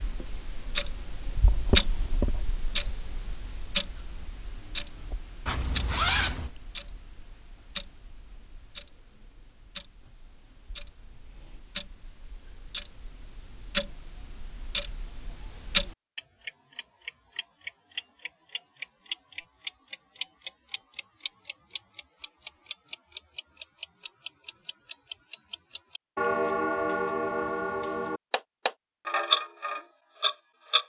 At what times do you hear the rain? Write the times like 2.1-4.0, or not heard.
not heard.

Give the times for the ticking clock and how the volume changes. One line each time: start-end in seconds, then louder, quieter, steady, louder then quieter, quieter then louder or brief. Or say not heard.
0.0-30.8 quieter then louder.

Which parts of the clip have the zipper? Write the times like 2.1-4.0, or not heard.
5.5-6.5.